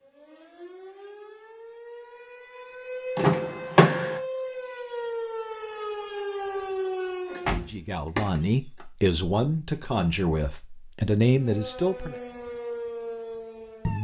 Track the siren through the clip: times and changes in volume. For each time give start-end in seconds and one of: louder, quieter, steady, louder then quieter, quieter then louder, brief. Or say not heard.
0.0-7.7 louder
11.3-13.9 brief.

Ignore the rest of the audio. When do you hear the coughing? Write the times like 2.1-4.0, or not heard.
not heard.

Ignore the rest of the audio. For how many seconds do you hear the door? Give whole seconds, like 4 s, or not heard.
3 s.